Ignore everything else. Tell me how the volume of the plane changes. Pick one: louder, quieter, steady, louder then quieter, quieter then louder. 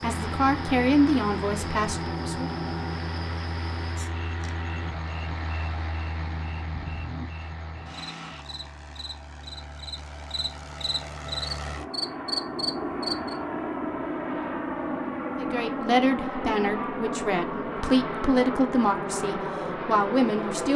quieter then louder.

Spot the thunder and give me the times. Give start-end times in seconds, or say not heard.
6.2-7.3.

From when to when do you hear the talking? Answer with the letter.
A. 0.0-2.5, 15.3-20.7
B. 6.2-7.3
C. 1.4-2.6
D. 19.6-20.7
A.